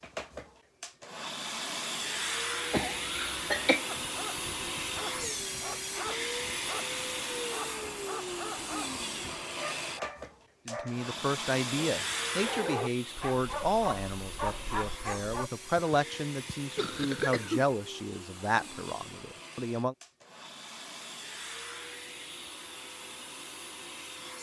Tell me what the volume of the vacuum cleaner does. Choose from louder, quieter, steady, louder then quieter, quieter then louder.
quieter.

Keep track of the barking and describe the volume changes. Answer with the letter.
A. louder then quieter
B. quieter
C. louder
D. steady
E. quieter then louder
C.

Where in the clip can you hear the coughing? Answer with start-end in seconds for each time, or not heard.
2.7-3.9, 15.8-17.6.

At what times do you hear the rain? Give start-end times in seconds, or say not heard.
not heard.